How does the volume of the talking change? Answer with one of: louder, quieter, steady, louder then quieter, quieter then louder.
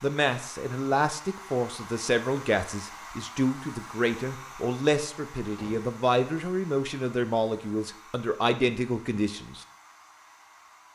steady.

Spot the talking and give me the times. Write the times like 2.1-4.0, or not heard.
0.0-9.7.